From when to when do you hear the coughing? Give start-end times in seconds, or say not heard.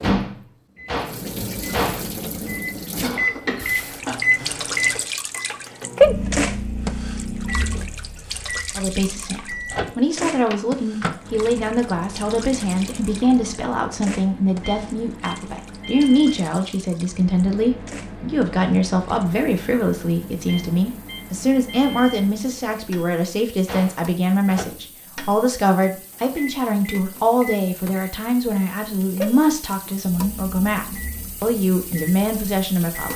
3.0-5.0.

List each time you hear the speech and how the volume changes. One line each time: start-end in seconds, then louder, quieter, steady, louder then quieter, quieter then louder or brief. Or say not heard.
8.8-33.1 steady.